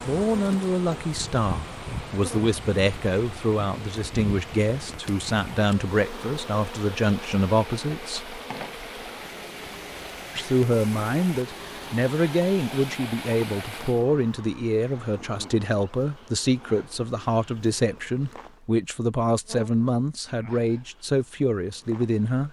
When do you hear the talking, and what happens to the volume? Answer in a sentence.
The talking can be heard from 0.1 to 8.3 s, at a steady volume; and from 10.3 to 22.4 s, at a steady volume.